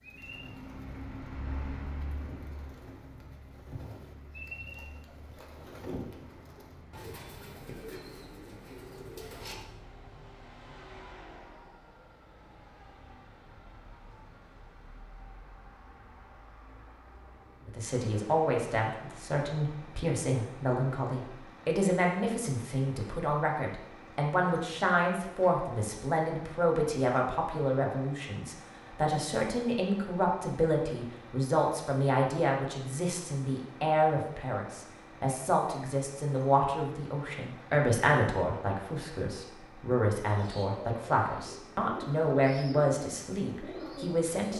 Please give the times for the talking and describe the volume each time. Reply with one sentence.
You can hear the talking from 17.6 to 44.5 s, at a steady volume.